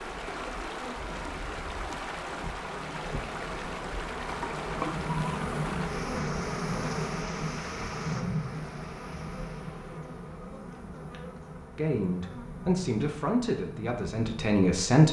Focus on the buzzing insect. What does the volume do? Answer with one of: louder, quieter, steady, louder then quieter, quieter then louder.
louder then quieter.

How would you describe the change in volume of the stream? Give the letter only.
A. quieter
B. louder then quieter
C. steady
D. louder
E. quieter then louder
A.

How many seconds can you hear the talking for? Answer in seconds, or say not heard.
3 s.